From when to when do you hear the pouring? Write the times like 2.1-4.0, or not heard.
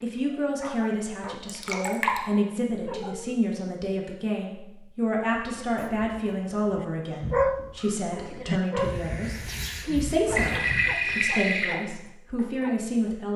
1.4-2.2, 10.3-11.8.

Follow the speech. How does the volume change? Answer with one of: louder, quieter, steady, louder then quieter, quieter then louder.
steady.